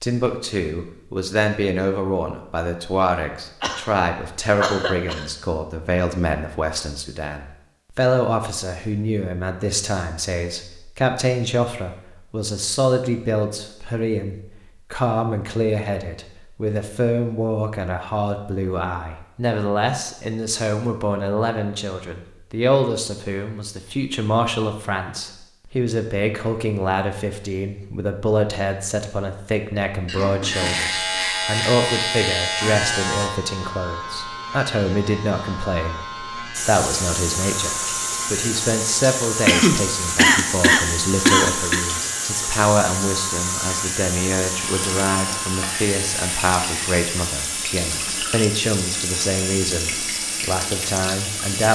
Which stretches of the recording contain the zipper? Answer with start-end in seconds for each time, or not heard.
not heard.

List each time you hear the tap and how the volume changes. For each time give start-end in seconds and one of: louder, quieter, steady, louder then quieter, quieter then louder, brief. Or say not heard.
36.5-51.7 steady.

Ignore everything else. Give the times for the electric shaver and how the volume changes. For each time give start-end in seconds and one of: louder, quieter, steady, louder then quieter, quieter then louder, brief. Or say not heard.
30.5-47.0 quieter.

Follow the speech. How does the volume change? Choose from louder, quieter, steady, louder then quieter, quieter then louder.
steady.